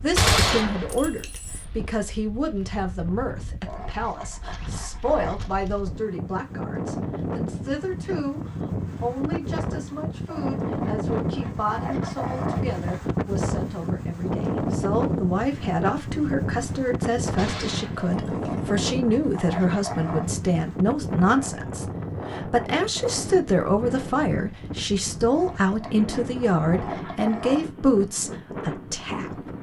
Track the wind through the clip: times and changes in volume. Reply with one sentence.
The wind can be heard from 0.0 to 29.5 s, getting louder then quieter.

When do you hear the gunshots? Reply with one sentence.
You can hear the gunshots from 0.1 to 1.6 s and from 17.4 to 18.7 s.